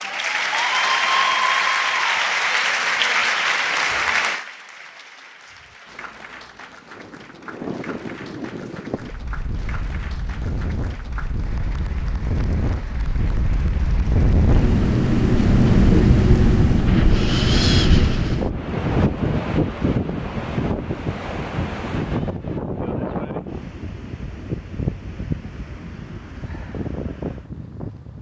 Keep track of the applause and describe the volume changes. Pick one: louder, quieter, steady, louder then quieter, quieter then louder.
quieter.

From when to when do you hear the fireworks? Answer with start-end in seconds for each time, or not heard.
not heard.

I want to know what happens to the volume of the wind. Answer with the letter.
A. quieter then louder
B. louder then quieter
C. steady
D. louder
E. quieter
B.